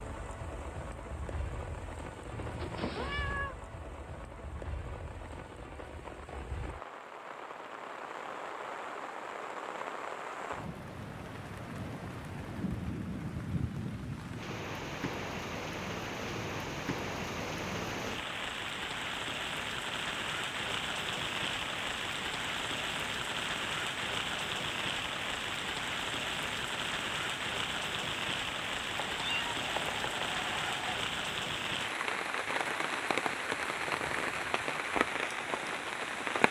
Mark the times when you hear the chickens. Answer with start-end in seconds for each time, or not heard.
not heard.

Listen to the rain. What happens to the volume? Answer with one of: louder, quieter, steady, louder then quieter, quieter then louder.
louder.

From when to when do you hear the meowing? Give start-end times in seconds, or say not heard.
2.3-3.5, 28.9-30.9.